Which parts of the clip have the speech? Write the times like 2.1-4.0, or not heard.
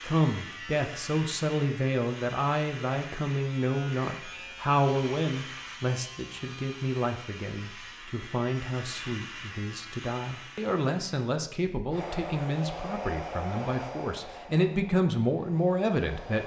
0.0-16.4.